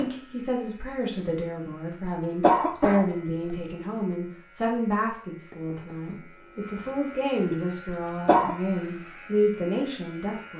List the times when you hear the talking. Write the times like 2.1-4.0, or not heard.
0.0-10.5.